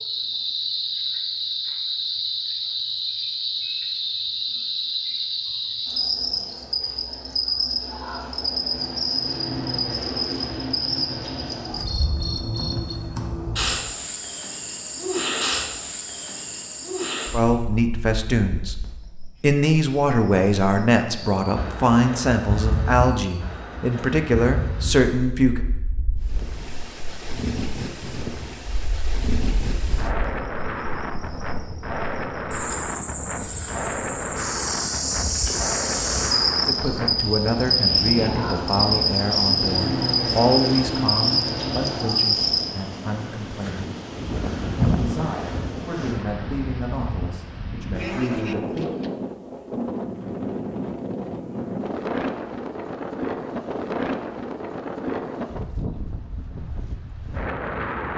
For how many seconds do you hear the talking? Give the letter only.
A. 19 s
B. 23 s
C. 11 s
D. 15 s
A.